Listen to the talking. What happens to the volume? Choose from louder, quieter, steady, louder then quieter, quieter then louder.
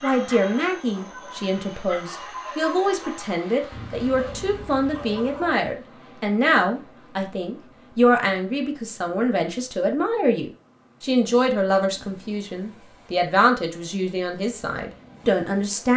steady.